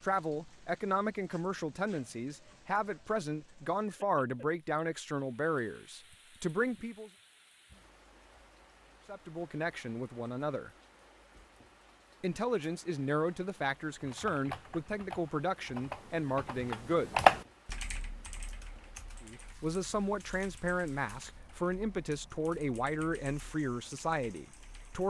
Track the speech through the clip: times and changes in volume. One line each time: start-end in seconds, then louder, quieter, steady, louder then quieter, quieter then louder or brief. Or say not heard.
0.0-7.1 steady
9.1-10.7 brief
12.2-17.2 steady
19.2-25.0 steady.